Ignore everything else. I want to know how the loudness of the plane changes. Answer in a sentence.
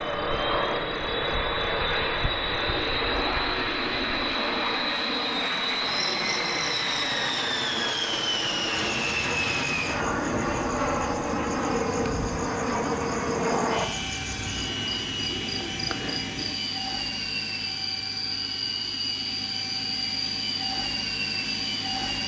The volume of the plane goes down.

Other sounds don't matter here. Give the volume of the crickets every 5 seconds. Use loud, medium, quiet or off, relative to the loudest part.
quiet, medium, medium, loud, loud.